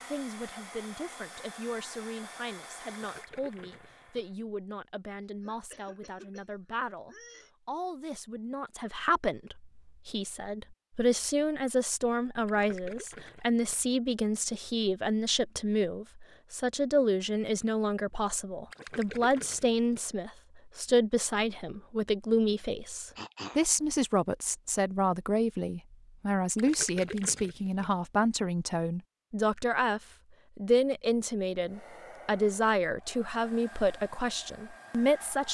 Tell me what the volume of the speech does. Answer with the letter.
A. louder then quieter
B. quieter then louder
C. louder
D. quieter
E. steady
C.